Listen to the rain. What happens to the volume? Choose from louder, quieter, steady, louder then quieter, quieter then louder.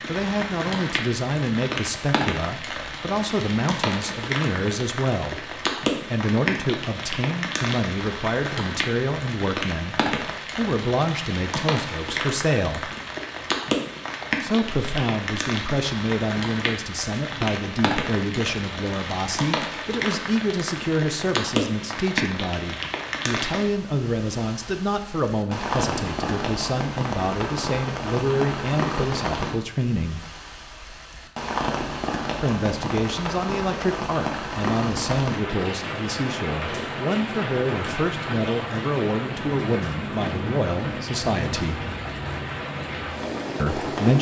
steady.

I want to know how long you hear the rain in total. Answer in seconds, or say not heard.
44 s.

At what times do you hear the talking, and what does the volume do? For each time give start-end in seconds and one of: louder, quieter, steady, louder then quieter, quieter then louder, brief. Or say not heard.
0.1-12.9 steady
14.4-30.2 steady
32.4-41.9 steady
43.5-44.1 brief.